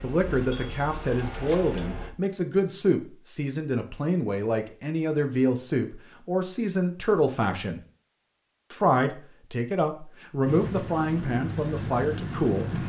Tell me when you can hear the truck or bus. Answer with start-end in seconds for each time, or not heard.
0.0-2.1, 10.4-12.8.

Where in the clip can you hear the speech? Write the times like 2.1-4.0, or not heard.
0.0-7.8, 8.7-12.8.